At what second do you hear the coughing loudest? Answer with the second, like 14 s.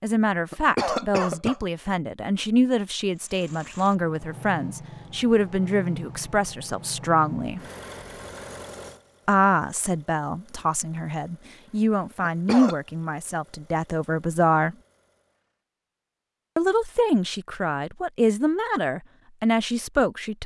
1 s.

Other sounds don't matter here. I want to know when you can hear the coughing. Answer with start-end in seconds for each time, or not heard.
0.5-1.6, 12.2-12.8.